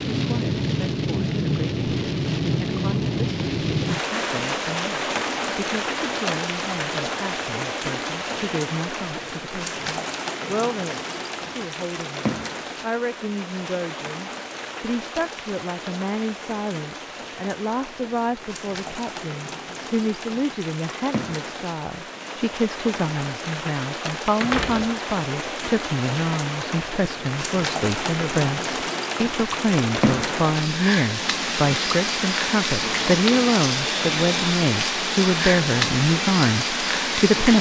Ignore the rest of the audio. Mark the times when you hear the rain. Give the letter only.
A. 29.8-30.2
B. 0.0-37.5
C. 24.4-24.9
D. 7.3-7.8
B.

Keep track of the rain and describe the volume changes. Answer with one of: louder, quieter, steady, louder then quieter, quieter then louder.
quieter then louder.